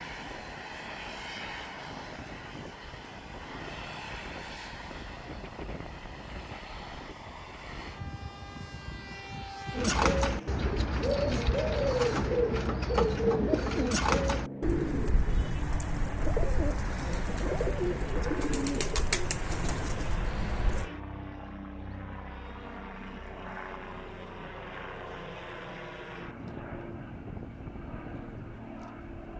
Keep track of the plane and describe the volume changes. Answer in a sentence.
The loudness of the plane stays about the same.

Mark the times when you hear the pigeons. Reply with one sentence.
The pigeons can be heard from 9.7 to 20.9 s.